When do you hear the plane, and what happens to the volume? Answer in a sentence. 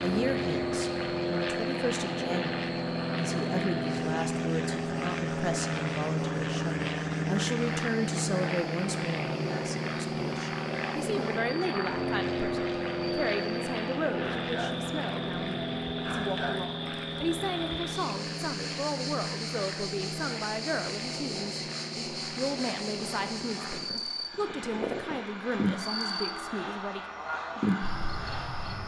The plane can be heard from 0.0 to 28.8 s, getting quieter.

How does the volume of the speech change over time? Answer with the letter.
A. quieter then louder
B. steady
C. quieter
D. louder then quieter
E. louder
B.